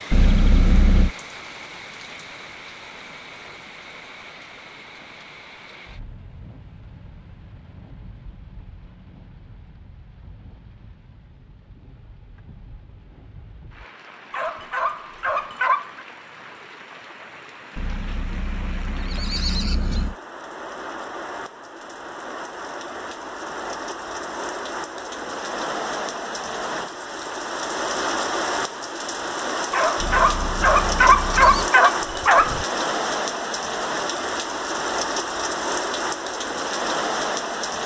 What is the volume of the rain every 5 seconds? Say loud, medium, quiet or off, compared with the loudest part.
quiet, quiet, quiet, quiet, medium, loud, loud, loud.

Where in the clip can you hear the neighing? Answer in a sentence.
You can hear the neighing from 0.1 to 1.1 s, from 17.8 to 20.1 s and from 30.0 to 31.7 s.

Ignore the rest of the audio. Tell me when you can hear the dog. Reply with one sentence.
You can hear the dog from 14.3 to 16.1 s and from 29.7 to 32.6 s.